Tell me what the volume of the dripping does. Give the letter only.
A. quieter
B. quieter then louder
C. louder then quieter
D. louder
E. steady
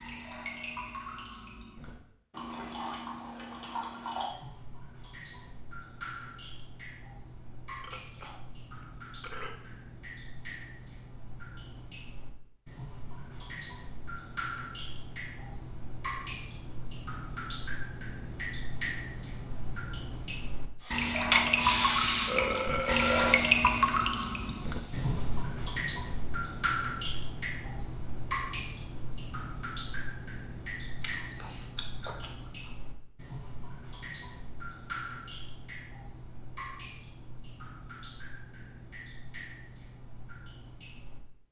C.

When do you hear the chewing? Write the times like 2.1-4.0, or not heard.
31.0-32.7.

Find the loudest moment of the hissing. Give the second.
22 s.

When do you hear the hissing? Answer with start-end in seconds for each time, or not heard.
20.8-25.5.